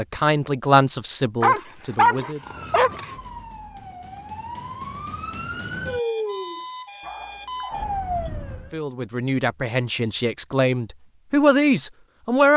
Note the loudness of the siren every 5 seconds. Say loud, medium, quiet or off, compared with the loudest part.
medium, loud, off.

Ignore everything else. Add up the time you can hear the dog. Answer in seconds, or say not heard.
3 s.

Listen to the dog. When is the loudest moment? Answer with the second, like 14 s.
2 s.